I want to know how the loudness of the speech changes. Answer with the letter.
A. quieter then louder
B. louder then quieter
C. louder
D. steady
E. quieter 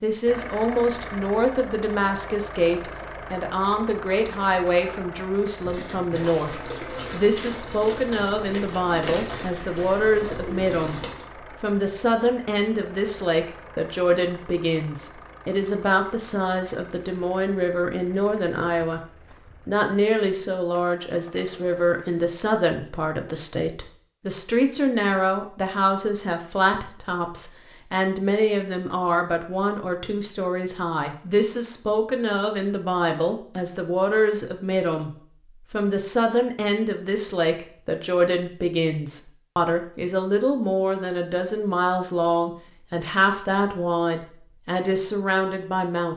D.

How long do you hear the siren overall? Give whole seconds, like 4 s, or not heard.
not heard.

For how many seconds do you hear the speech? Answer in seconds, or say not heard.
44 s.